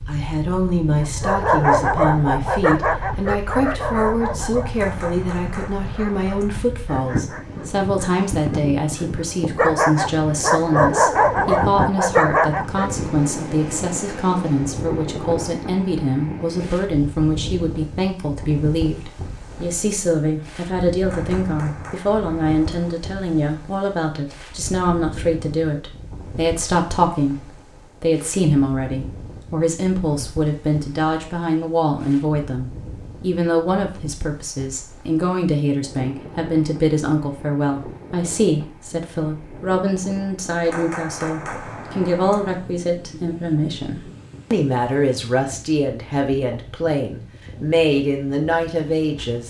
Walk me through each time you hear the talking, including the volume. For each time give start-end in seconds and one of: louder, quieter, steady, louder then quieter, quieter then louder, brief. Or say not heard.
0.1-49.4 steady.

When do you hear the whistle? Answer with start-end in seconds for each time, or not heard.
not heard.